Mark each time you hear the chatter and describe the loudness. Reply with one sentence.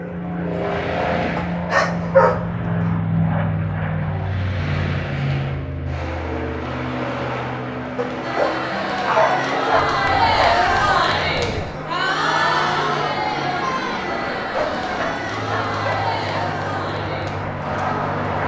The chatter can be heard from 8.2 to 18.4 s, getting quieter.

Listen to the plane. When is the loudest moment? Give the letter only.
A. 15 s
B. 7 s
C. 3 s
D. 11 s
C.